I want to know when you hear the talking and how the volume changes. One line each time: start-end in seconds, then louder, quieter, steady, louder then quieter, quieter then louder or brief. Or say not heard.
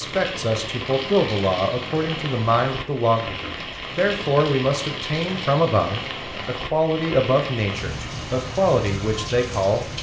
0.0-9.8 steady.